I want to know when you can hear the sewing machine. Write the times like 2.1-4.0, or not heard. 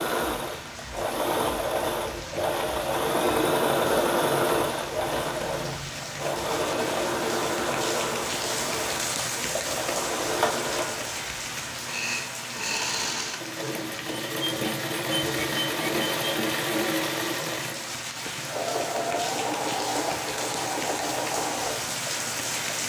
0.0-22.8.